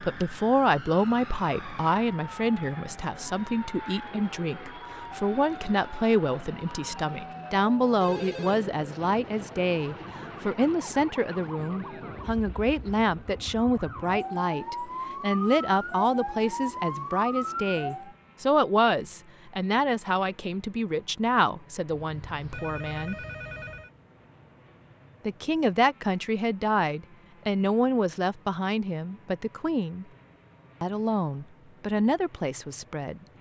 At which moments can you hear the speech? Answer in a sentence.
You can hear the speech from 0.0 to 23.1 s, from 25.2 to 30.1 s and from 30.8 to 33.2 s.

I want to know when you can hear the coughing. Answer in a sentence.
The coughing can't be heard in this clip.